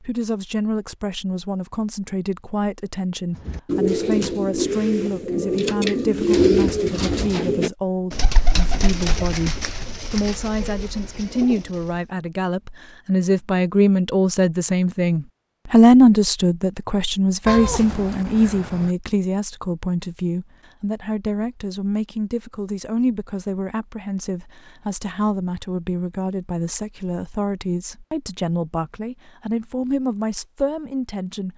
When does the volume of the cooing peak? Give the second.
6 s.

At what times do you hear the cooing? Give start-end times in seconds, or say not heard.
3.5-11.9.